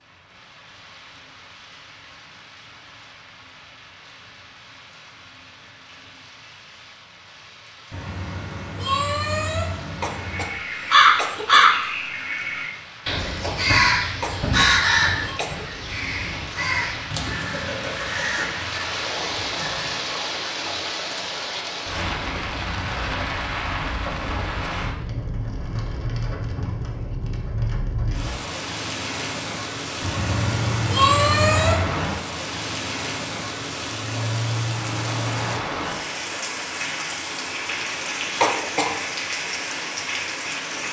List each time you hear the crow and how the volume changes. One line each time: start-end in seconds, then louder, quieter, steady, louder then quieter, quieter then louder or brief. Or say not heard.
10.2-20.2 quieter.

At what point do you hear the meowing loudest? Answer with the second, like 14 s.
31 s.